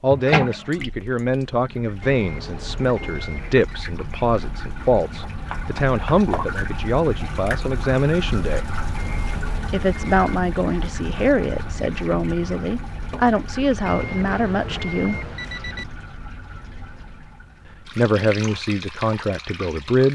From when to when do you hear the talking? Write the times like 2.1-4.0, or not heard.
0.0-8.7, 9.7-15.2, 17.9-20.0.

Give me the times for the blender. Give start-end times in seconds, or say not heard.
not heard.